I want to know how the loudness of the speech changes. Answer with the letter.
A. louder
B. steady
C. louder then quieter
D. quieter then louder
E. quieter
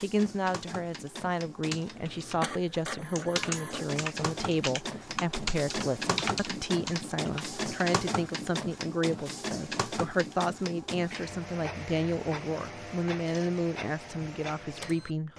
B.